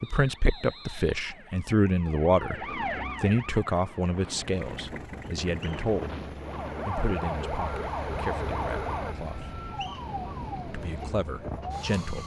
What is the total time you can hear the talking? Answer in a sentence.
The talking can be heard for 11 seconds in total.